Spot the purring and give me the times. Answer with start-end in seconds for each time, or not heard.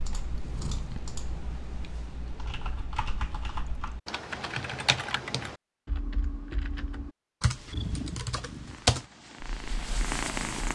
0.2-1.8, 7.7-10.7.